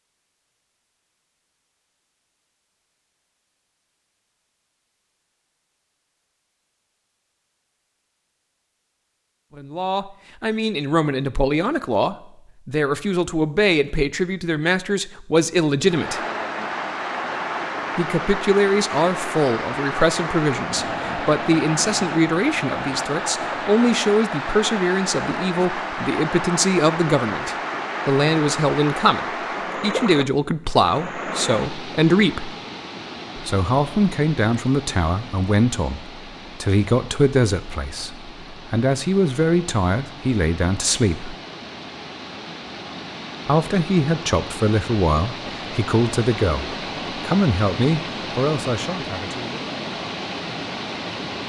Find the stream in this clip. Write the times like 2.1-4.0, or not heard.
15.8-51.4.